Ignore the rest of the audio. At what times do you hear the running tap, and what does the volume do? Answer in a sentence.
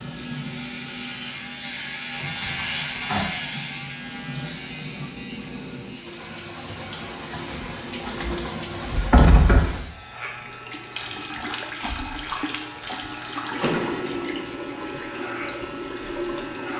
You can hear the running tap from 0.0 to 16.7 s, getting louder.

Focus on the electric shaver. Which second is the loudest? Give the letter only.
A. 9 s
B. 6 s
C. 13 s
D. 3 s
D.